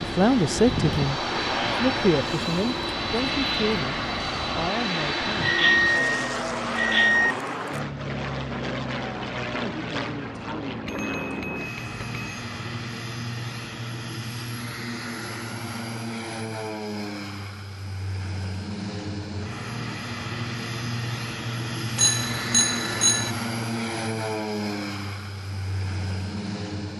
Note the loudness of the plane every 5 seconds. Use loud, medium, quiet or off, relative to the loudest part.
loud, loud, medium, medium, loud, medium.